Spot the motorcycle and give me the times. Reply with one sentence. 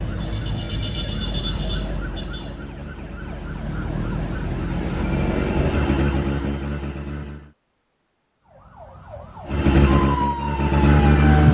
The motorcycle can be heard from 0.0 to 7.5 s and from 9.4 to 11.4 s.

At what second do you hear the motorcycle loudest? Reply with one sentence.
The loudest moment of the motorcycle is at 11 seconds.